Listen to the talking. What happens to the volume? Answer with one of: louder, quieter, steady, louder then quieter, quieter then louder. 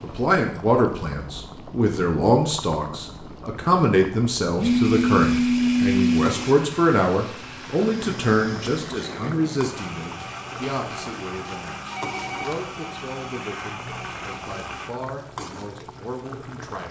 quieter.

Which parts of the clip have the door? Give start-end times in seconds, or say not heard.
not heard.